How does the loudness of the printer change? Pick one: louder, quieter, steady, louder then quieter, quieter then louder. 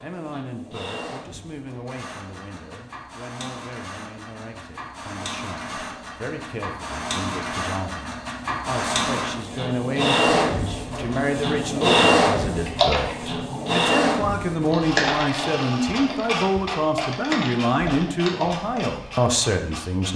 louder then quieter.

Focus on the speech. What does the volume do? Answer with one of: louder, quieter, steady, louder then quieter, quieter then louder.
louder.